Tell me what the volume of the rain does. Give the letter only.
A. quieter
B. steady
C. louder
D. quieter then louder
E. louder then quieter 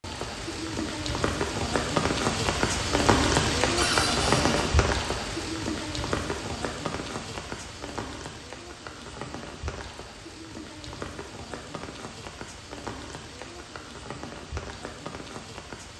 A.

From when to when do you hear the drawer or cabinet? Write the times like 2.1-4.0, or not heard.
3.8-4.7.